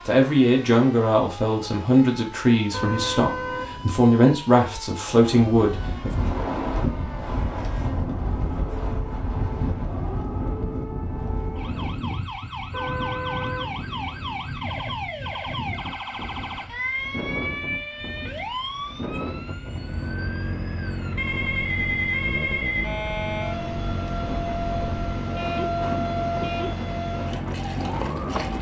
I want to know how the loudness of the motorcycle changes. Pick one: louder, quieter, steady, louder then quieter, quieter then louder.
steady.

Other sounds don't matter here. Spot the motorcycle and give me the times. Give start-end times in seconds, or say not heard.
19.6-28.5.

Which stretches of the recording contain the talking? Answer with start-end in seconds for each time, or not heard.
0.1-6.2.